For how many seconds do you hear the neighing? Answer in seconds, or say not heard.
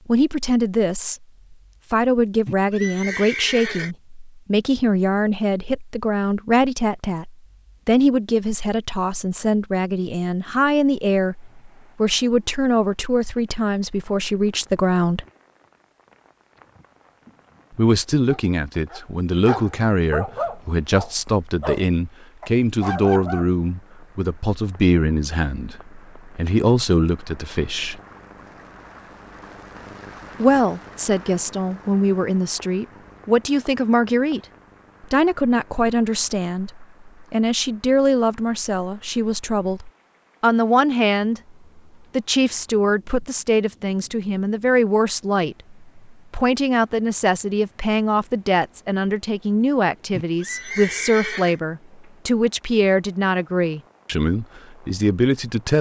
3 s.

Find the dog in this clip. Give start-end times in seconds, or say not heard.
18.2-23.5.